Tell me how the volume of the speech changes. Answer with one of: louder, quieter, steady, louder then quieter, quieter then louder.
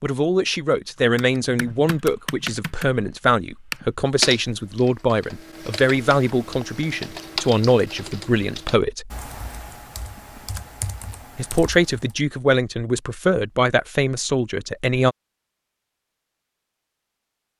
steady.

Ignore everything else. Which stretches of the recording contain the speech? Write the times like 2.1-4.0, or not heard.
0.0-9.1, 11.3-15.2.